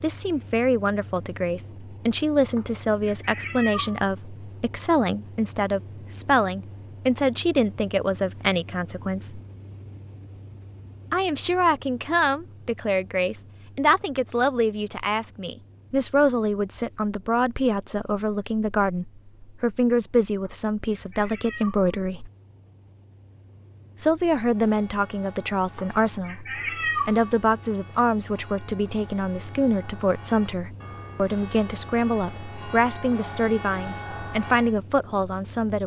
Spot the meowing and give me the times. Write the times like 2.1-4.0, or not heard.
2.5-4.0, 20.4-21.9, 25.8-27.4.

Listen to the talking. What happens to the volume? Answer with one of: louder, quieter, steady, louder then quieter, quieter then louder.
steady.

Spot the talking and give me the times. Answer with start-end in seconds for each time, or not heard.
0.0-9.4, 11.1-22.3, 24.0-35.8.